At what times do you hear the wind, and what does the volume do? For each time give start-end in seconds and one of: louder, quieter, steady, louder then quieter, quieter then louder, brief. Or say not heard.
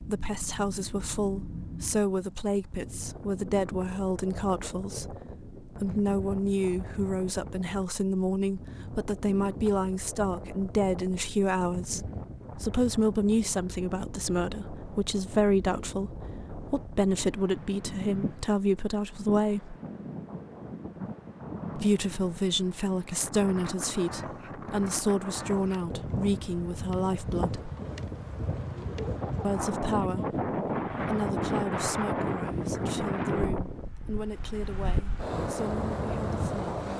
0.0-36.9 louder.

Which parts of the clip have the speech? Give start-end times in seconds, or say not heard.
0.0-19.8, 21.8-27.7, 29.4-36.9.